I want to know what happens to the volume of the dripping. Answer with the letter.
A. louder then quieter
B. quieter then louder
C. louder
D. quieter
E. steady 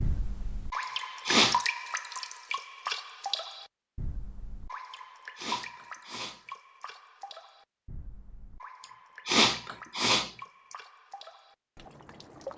D.